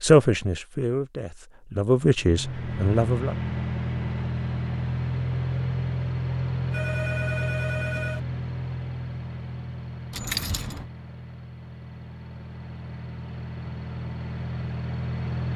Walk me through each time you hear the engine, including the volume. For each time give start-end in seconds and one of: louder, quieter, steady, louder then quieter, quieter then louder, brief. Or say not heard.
2.2-15.5 quieter then louder.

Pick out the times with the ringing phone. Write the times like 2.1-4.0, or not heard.
6.7-8.2.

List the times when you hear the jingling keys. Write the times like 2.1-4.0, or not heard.
10.1-10.8.